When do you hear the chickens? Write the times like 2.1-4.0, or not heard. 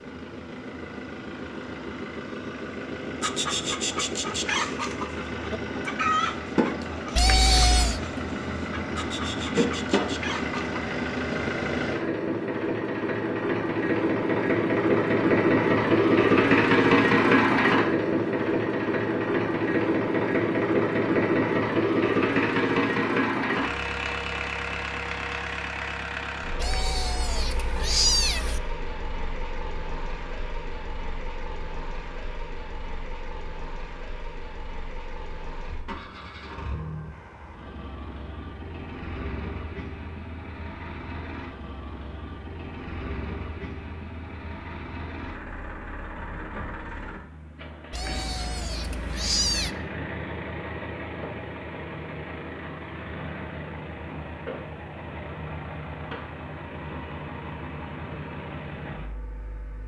3.2-10.8.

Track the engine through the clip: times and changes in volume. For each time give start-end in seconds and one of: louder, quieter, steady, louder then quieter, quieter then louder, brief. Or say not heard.
0.0-59.8 louder then quieter.